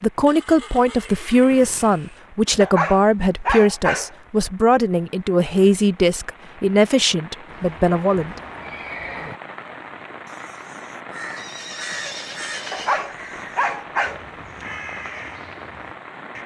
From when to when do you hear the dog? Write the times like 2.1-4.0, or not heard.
2.6-4.1, 12.7-14.7.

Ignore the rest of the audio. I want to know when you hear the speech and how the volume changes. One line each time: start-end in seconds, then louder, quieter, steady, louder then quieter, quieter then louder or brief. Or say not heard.
0.0-8.3 steady.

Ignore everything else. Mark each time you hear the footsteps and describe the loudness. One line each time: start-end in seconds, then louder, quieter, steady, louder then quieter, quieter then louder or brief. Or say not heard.
not heard.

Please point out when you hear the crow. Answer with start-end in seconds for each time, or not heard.
10.2-16.4.